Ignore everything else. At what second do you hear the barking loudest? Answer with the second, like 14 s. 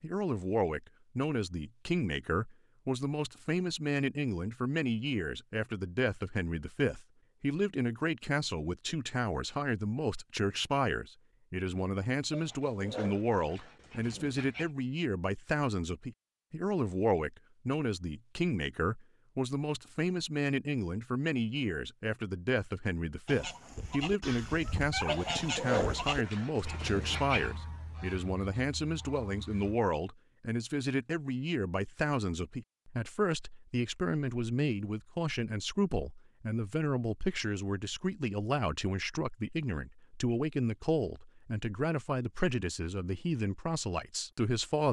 26 s.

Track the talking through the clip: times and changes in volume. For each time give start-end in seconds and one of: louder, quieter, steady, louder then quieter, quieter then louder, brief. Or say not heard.
0.0-44.8 steady.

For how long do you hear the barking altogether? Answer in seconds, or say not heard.
5 s.